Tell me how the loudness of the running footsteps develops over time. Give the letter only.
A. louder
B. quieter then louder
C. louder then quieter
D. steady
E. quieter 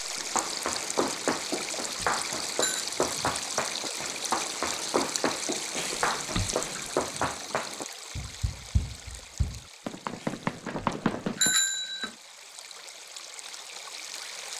D.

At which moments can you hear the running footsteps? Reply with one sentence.
The running footsteps can be heard from 0.1 to 11.6 s.